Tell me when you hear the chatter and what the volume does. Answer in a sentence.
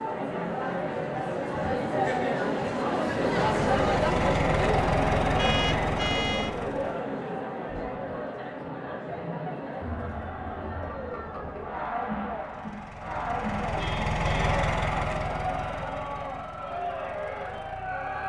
You can hear the chatter from 0.0 to 18.2 s, getting quieter.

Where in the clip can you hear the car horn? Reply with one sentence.
You can hear the car horn from 5.3 to 6.5 s and from 13.8 to 14.6 s.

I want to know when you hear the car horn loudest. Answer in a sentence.
The volume of the car horn peaks at 6 seconds.